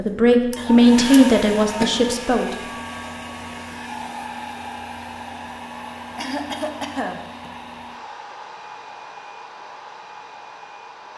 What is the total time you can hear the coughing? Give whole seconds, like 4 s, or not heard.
3 s.